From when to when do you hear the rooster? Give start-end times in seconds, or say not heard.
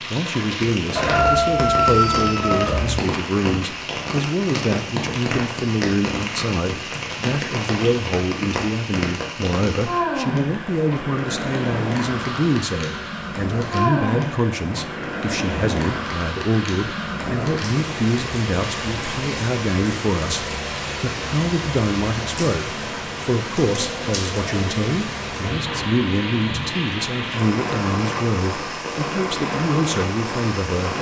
0.9-3.0.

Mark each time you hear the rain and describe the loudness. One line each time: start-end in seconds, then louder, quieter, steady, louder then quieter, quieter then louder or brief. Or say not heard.
0.0-30.9 steady.